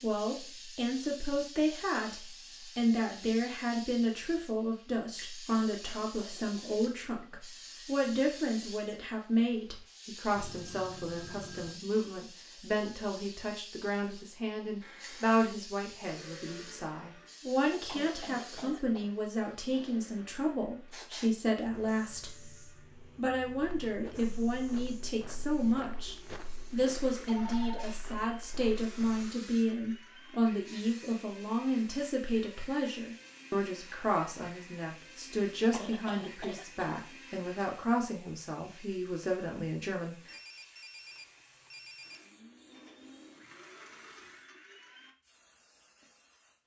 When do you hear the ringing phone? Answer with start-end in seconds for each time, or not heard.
10.3-11.8, 27.2-28.0, 40.2-42.2.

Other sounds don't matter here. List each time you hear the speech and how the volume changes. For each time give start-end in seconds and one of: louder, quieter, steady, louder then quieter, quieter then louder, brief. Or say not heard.
0.0-40.4 steady.